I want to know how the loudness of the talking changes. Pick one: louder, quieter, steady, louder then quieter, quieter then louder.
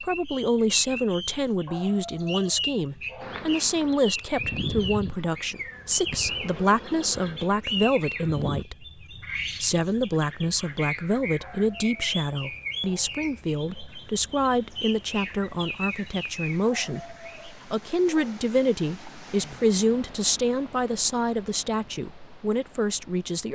steady.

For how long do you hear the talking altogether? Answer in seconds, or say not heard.
23 s.